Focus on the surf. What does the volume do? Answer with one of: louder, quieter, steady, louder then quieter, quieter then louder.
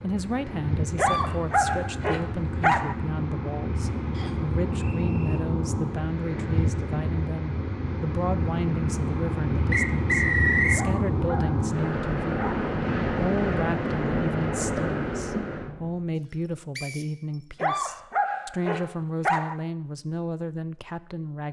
louder.